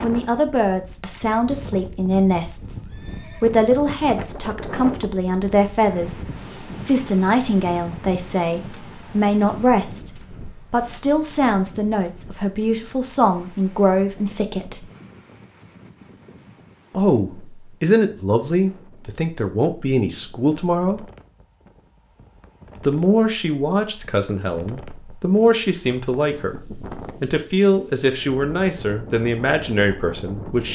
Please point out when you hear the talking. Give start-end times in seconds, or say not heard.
0.0-2.8, 3.4-6.2, 6.8-14.8, 16.9-21.1, 22.8-30.7.